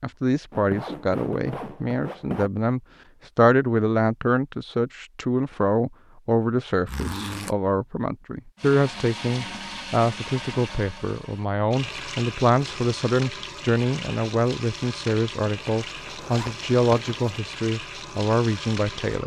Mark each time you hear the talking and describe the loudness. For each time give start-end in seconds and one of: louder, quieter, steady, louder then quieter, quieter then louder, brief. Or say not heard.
0.0-19.2 steady.